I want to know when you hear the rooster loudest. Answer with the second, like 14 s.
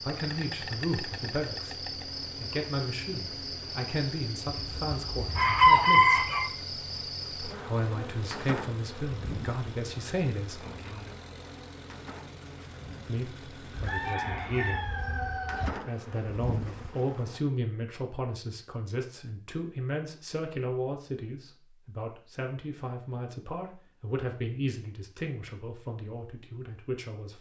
6 s.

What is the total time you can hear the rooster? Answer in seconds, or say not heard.
4 s.